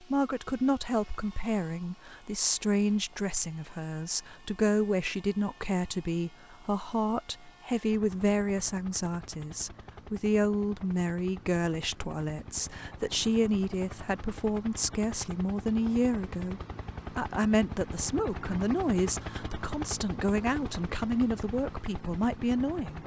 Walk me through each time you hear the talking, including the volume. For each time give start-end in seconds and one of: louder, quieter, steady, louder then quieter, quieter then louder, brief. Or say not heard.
0.0-23.0 steady.